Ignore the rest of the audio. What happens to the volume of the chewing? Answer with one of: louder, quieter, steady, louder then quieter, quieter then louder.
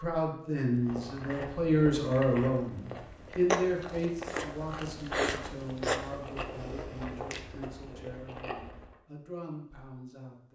louder then quieter.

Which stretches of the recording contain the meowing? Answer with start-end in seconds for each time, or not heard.
not heard.